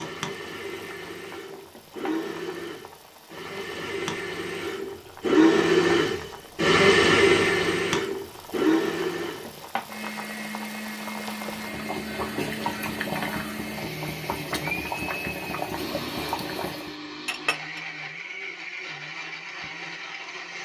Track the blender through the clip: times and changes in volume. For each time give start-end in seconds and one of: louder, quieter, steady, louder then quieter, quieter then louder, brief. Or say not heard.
0.0-20.6 louder then quieter.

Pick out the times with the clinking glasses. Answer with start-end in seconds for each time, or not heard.
17.2-17.8.